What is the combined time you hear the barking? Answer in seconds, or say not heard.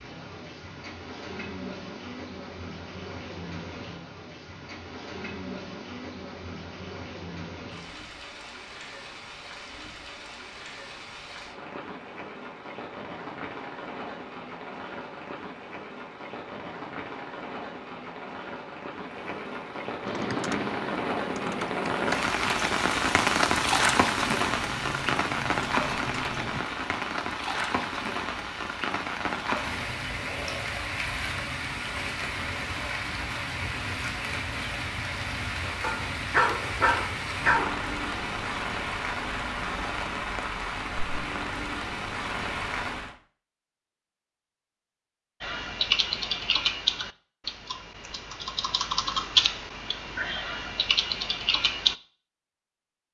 2 s.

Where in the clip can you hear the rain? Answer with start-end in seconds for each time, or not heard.
0.0-43.1.